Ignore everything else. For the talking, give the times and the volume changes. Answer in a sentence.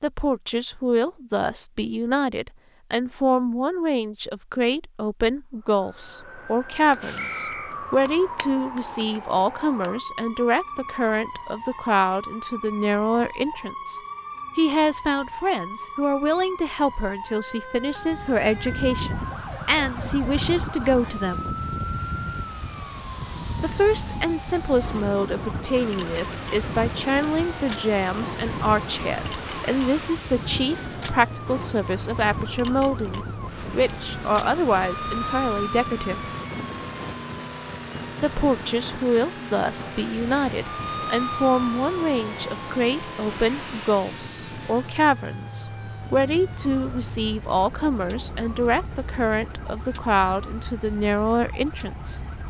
You can hear the talking from 0.0 to 21.4 s, at a steady volume; from 23.6 to 36.2 s, at a steady volume; and from 38.2 to 52.2 s, at a steady volume.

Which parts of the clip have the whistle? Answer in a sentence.
You can hear the whistle from 7.2 to 7.8 s.